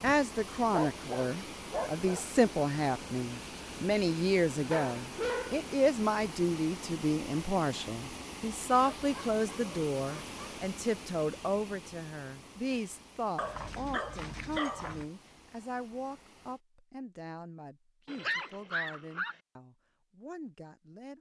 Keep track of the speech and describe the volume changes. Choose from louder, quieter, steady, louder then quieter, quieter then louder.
quieter.